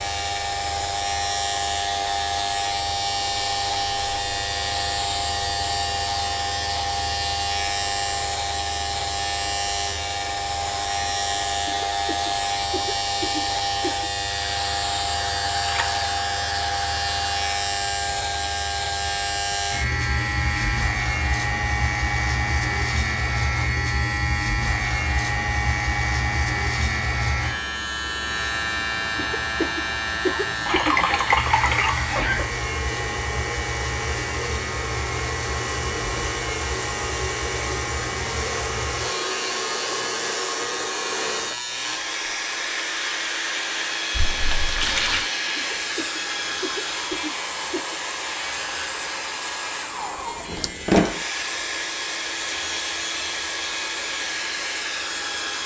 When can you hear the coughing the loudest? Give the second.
30 s.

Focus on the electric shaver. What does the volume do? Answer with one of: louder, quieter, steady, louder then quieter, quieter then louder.
quieter.